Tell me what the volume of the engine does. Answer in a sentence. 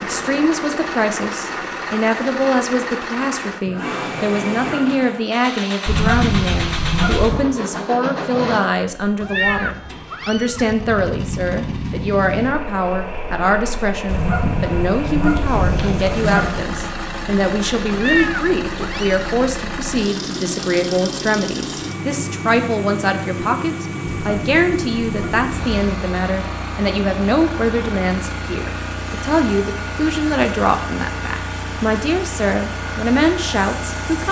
The volume of the engine stays about the same.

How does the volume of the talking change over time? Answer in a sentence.
The volume of the talking stays about the same.